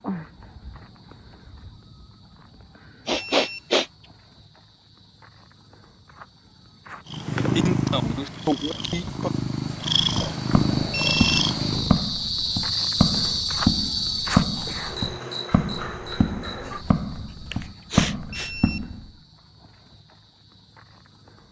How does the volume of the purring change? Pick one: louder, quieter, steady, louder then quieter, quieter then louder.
quieter then louder.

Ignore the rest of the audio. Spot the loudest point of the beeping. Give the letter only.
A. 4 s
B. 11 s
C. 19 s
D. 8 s
B.